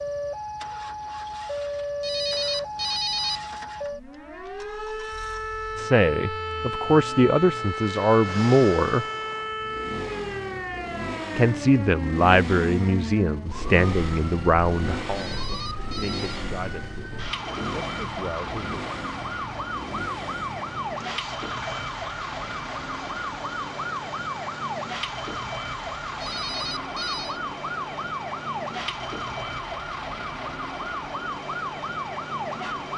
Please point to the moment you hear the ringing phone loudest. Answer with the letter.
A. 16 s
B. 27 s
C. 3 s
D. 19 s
C.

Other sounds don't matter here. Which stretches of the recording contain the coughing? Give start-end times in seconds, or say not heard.
not heard.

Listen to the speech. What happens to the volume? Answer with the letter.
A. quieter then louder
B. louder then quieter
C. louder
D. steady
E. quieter
E.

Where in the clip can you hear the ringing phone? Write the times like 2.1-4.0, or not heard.
2.0-3.5, 15.2-16.4, 26.2-27.4.